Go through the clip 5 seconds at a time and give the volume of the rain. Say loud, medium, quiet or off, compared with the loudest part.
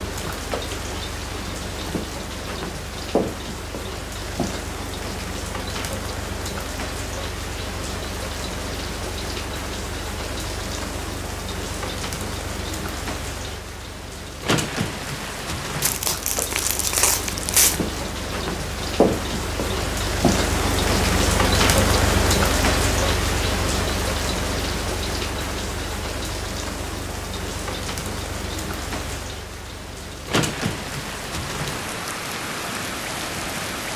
medium, medium, medium, medium, loud, medium, medium.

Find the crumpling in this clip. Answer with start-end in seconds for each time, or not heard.
15.8-17.8.